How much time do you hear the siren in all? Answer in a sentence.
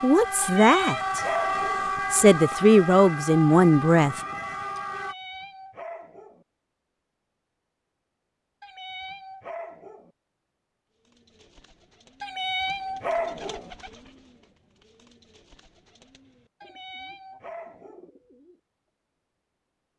The siren can be heard for 5 seconds in total.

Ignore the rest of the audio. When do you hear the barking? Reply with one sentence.
The barking can be heard from 0.4 to 1.9 s, from 4.9 to 6.5 s, from 8.6 to 10.1 s, from 12.2 to 13.7 s and from 16.6 to 18.1 s.